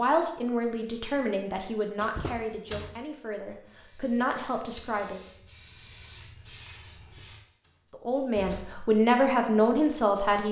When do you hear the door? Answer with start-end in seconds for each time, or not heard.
2.0-3.0, 7.1-8.9.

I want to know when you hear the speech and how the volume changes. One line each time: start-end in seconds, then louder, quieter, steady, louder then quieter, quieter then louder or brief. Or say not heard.
0.0-5.2 quieter then louder
7.9-10.4 brief.